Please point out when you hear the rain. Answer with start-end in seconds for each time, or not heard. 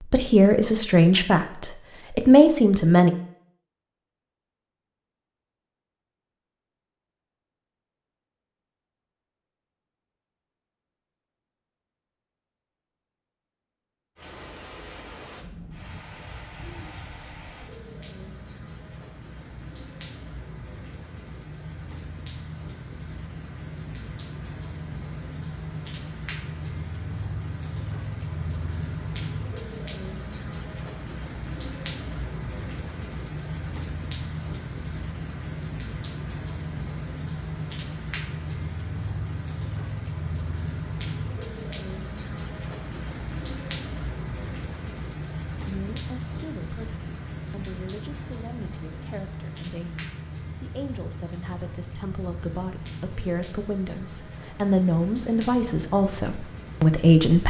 14.2-57.4.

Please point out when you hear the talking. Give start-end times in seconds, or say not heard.
0.0-3.1, 45.6-57.4.